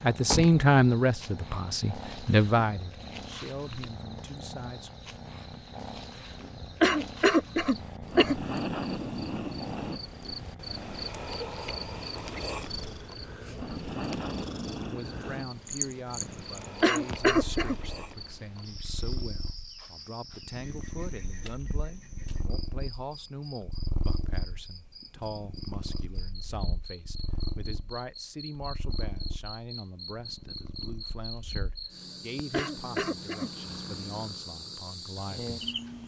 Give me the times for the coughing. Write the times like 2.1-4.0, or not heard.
6.8-8.4, 16.8-17.8, 32.5-33.5.